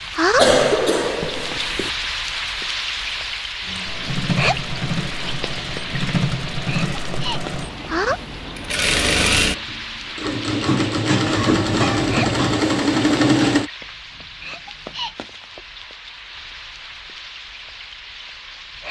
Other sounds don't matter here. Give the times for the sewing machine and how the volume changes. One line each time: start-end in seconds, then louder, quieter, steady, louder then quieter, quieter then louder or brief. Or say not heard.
3.6-13.7 louder.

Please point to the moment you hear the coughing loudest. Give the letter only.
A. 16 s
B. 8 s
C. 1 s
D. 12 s
C.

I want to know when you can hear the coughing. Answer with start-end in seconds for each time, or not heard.
0.3-1.9, 11.2-12.6.